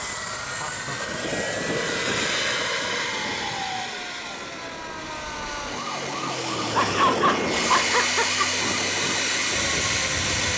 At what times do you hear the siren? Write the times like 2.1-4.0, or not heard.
0.0-10.5.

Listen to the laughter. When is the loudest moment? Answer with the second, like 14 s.
7 s.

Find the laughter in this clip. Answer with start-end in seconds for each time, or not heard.
0.6-1.0, 6.8-8.7.